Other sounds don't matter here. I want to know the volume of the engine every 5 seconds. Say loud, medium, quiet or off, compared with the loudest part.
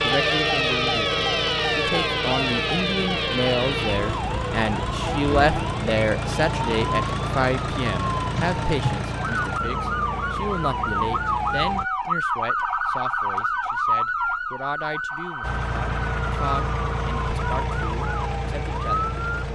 medium, loud, medium, loud.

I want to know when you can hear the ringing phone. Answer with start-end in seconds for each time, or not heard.
not heard.